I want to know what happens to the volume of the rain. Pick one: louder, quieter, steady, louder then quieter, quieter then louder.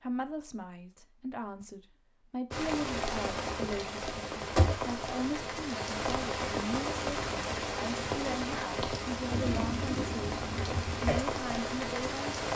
steady.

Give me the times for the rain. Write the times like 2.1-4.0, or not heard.
2.5-12.5.